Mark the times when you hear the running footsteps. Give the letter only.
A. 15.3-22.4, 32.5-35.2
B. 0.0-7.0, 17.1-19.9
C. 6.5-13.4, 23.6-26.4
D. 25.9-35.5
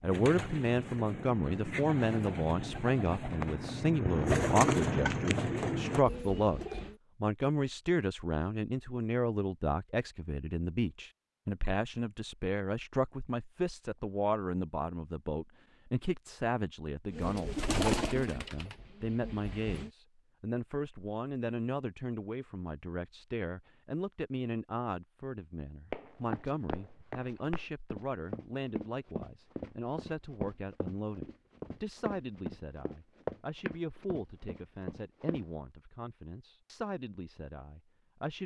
D.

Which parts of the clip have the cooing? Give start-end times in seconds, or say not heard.
0.0-7.0, 17.1-19.9.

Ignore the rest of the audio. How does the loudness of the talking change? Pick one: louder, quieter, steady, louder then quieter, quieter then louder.
quieter.